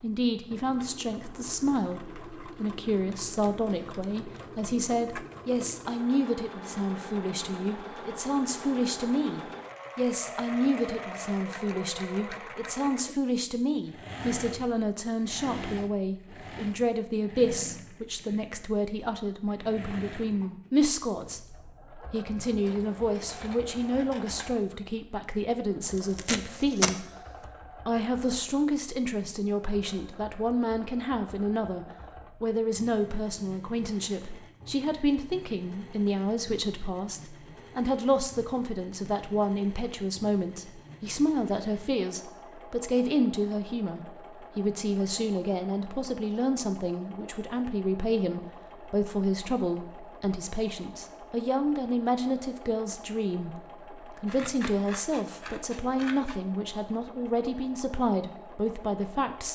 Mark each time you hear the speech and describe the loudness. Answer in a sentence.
You can hear the speech from 0.0 to 59.5 s, at a steady volume.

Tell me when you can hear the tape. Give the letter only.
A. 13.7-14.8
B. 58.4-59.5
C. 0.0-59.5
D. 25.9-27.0
D.